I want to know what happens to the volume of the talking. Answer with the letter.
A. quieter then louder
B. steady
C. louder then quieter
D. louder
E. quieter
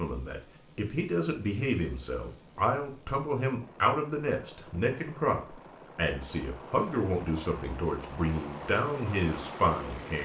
B.